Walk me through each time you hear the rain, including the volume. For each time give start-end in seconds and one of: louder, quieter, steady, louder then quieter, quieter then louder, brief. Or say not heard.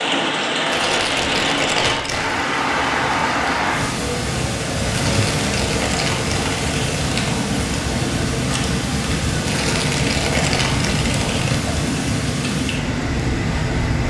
0.0-14.0 steady.